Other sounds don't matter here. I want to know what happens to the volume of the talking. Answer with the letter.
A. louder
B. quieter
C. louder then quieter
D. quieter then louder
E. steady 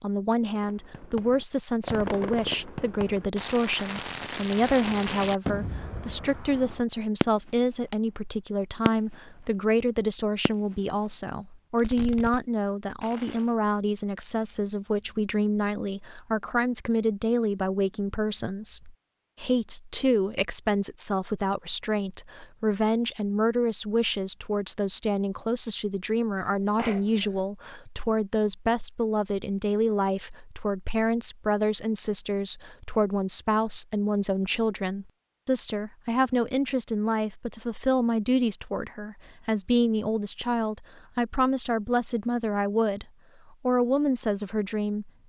E.